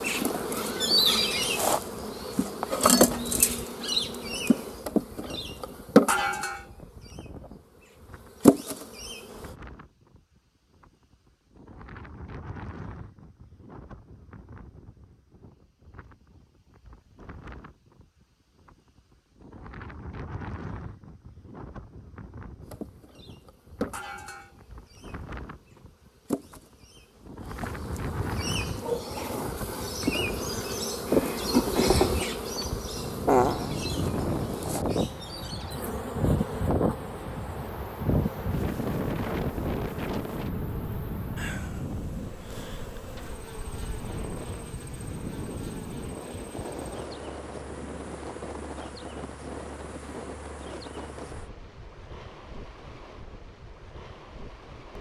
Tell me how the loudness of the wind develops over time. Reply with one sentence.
The volume of the wind goes up, then down.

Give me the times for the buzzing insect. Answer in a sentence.
You can hear the buzzing insect from 0.0 to 9.5 s and from 22.6 to 51.5 s.